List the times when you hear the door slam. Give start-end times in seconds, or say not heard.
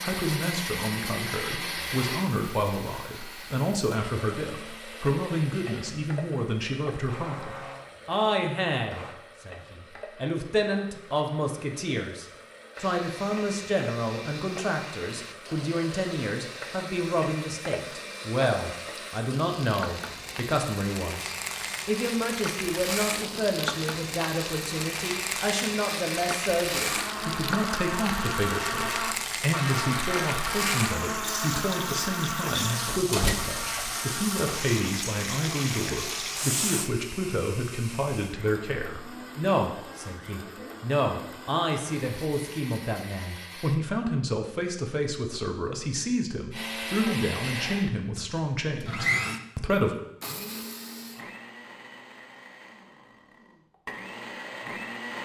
32.9-33.9.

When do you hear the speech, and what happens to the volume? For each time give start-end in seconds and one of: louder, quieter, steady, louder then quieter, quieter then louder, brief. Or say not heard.
0.0-50.0 steady.